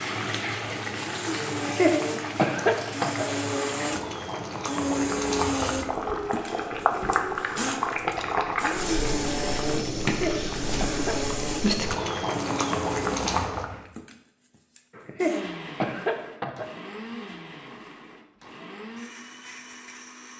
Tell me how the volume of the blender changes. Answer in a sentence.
The volume of the blender goes down.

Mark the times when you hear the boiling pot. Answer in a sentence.
You can hear the boiling pot from 0.0 to 13.8 s.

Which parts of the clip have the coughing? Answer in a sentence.
The coughing can be heard from 1.6 to 3.2 s, from 10.1 to 11.2 s and from 14.9 to 16.6 s.